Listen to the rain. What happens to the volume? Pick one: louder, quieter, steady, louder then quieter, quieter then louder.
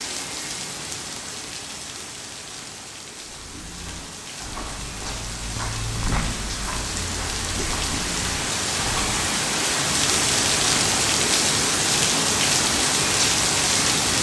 louder.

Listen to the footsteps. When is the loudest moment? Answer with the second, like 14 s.
6 s.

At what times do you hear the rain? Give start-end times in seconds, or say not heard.
0.0-14.1.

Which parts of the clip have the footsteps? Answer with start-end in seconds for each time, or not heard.
3.4-9.2.